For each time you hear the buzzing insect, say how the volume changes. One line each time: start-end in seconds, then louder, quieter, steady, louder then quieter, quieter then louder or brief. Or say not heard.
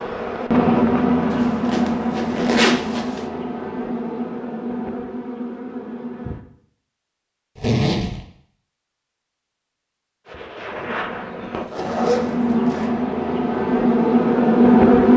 0.0-6.5 quieter
10.2-15.1 louder.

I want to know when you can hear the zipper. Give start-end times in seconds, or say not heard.
1.3-3.2, 7.5-8.2, 11.6-12.9.